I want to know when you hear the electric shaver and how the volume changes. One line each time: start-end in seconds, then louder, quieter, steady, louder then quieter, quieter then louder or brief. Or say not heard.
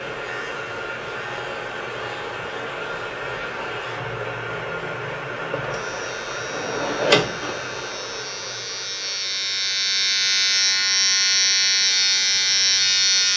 0.0-13.3 louder.